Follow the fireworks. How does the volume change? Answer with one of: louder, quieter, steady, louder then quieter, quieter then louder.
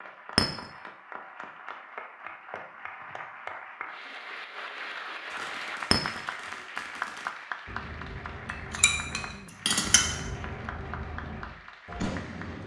louder.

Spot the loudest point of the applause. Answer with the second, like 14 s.
7 s.